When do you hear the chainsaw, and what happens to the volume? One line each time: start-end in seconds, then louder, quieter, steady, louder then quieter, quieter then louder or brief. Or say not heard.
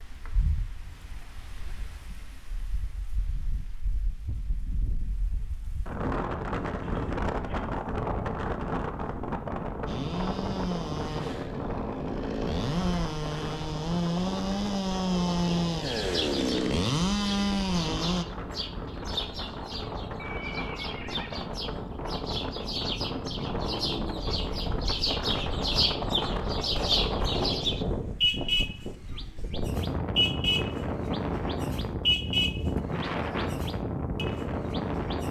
9.8-18.2 louder.